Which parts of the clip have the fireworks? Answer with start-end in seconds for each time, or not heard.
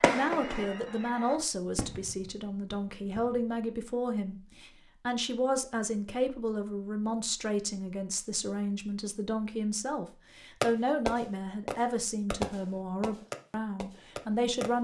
0.0-3.4, 10.6-14.7.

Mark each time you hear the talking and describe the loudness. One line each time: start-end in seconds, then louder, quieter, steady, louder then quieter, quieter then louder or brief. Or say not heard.
0.0-14.7 steady.